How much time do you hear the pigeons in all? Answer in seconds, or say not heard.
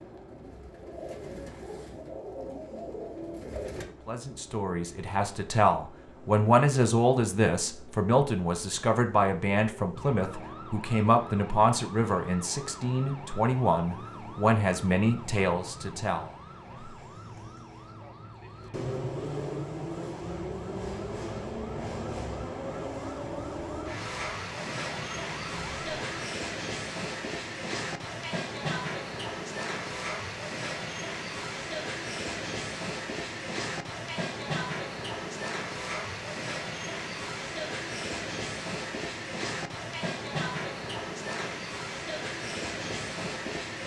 4 s.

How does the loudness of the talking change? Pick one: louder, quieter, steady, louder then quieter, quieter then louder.
steady.